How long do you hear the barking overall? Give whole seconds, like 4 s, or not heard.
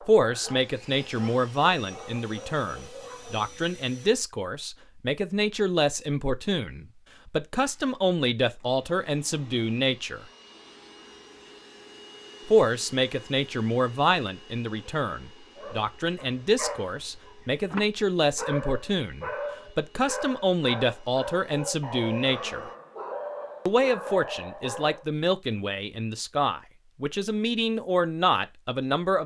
13 s.